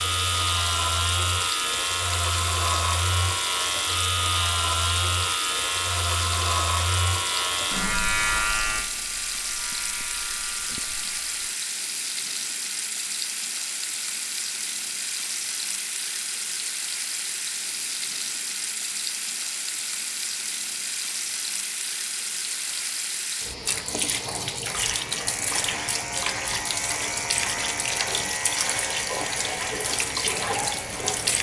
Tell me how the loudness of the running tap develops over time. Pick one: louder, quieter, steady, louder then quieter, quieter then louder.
steady.